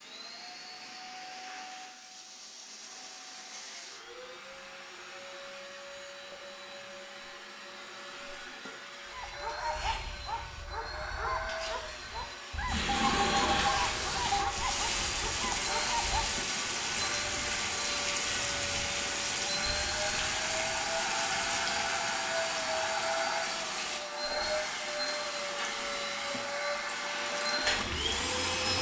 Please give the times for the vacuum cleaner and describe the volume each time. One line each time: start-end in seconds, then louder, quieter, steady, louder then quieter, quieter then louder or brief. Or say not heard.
0.0-28.7 louder.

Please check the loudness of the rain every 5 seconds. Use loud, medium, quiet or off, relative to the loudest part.
off, off, loud, loud, loud, medium.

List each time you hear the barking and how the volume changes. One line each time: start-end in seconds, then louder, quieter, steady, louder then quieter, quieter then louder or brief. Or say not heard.
9.1-16.4 steady.